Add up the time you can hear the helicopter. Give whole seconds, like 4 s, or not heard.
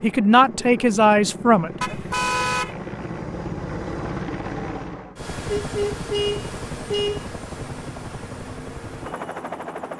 10 s.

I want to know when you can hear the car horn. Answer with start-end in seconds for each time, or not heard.
1.8-2.8, 5.5-7.2.